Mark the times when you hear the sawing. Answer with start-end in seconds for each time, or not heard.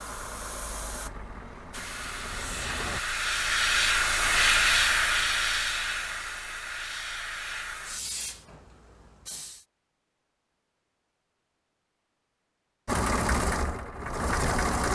not heard.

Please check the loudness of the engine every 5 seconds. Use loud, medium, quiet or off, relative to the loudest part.
quiet, off, loud.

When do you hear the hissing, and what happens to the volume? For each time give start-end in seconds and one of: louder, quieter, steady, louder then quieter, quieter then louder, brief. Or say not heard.
0.0-9.7 louder then quieter.